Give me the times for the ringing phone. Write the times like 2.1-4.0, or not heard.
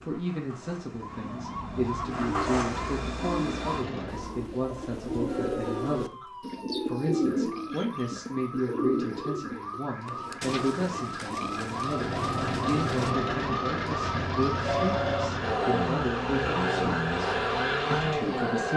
14.7-15.3.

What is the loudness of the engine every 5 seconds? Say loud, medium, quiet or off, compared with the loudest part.
medium, off, loud, loud.